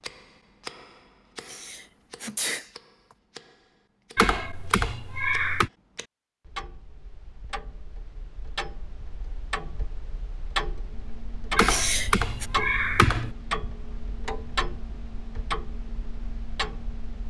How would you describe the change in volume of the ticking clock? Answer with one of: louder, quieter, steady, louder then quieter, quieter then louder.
louder.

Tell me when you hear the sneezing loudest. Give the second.
12 s.